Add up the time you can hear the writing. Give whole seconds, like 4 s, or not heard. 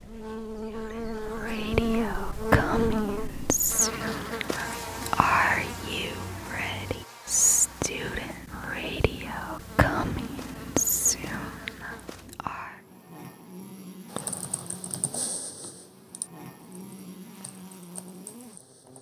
not heard.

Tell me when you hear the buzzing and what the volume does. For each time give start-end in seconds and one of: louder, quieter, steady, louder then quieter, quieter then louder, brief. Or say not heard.
0.0-18.9 quieter.